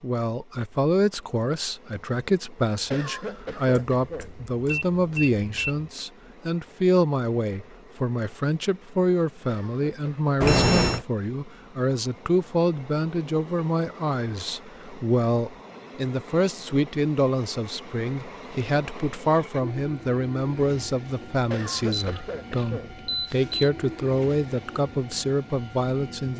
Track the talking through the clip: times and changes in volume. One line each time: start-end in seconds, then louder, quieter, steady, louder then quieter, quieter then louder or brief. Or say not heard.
0.0-26.3 steady.